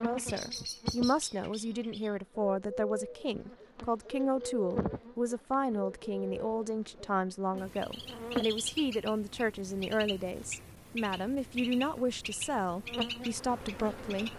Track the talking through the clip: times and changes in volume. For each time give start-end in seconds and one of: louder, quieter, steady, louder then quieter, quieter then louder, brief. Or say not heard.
0.0-14.3 steady.